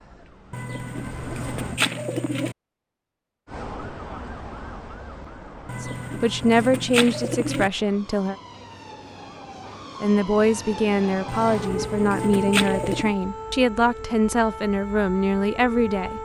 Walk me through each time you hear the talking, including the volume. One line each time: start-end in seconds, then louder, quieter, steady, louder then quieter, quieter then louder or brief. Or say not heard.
5.8-8.3 brief
10.0-16.2 steady.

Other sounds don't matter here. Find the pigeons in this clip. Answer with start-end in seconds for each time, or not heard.
0.5-2.5, 5.7-7.7, 11.2-13.2.